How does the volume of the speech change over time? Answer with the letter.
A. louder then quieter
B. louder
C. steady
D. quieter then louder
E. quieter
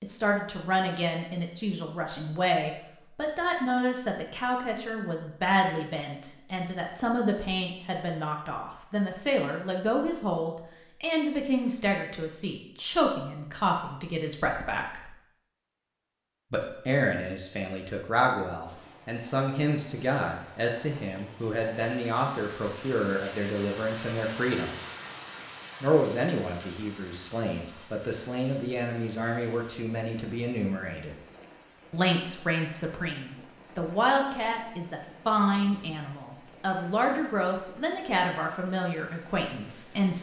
C.